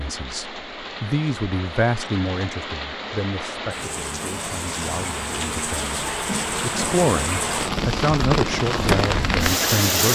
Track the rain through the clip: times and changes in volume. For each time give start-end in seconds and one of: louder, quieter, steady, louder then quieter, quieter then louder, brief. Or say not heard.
0.0-10.1 louder.